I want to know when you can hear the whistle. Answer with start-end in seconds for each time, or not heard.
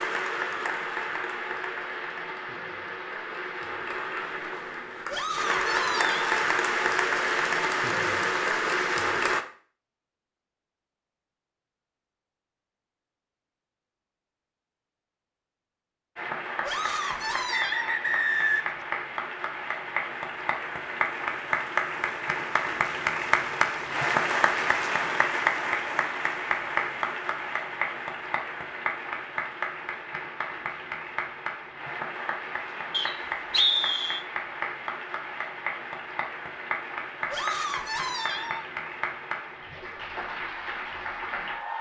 17.0-18.8, 32.9-34.2.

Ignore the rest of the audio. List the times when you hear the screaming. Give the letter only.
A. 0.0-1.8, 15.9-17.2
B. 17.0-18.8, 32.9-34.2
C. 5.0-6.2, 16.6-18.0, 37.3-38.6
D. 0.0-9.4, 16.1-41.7
C.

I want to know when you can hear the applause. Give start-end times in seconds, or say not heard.
0.0-9.4, 16.1-41.7.